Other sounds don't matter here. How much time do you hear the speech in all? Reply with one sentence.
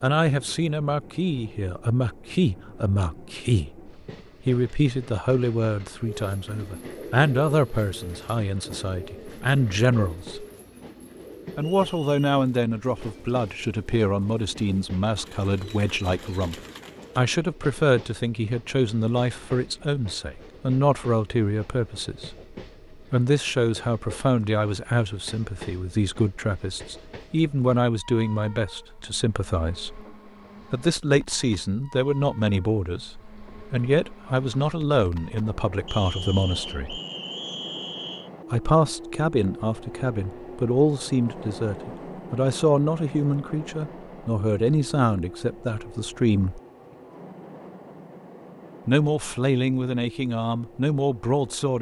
The speech can be heard for 46 seconds in total.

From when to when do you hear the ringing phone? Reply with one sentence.
The ringing phone can't be heard in this clip.